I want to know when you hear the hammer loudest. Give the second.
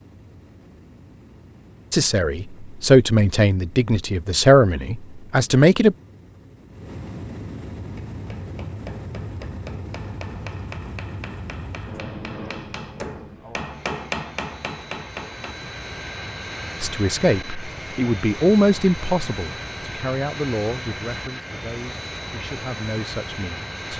14 s.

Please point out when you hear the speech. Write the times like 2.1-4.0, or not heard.
1.9-6.0, 16.8-23.9.